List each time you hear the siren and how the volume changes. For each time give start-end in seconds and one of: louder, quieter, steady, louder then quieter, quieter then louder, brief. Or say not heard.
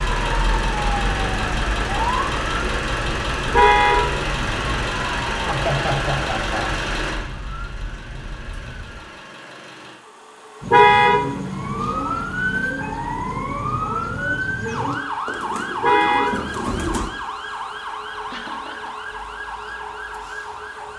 0.0-9.1 quieter
11.5-20.9 quieter.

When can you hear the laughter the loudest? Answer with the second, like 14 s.
6 s.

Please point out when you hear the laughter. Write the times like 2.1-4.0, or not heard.
5.3-6.7, 18.3-18.9.